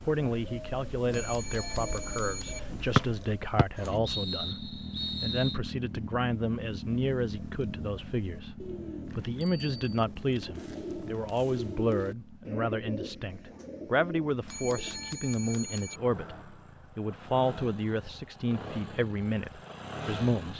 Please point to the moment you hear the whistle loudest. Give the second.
3 s.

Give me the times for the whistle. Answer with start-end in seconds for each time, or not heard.
3.0-5.6.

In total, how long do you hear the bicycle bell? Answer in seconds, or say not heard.
4 s.